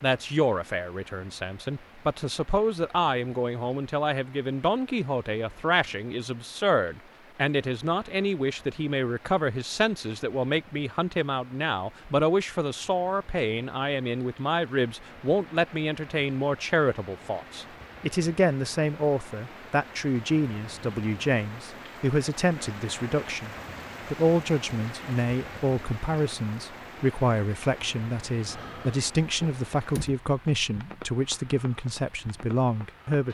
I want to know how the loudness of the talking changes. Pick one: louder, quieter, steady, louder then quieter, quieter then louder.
steady.